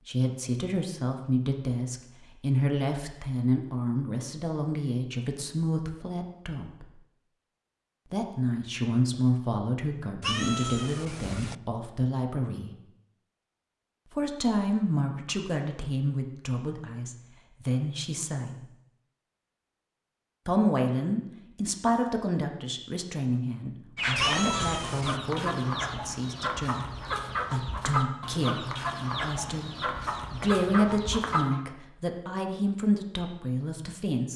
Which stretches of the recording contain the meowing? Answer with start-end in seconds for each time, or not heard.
10.2-11.6, 24.1-25.2.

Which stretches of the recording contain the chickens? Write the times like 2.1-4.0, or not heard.
23.9-31.6.